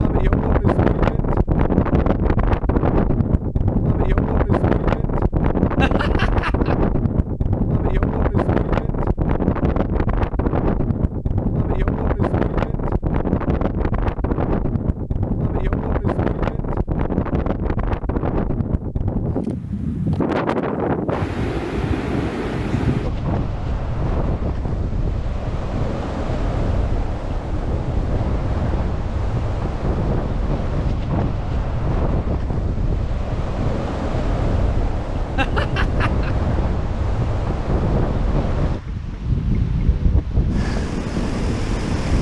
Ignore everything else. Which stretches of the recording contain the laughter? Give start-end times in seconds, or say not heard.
5.8-6.8, 35.4-36.4.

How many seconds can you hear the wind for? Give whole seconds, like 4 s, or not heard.
42 s.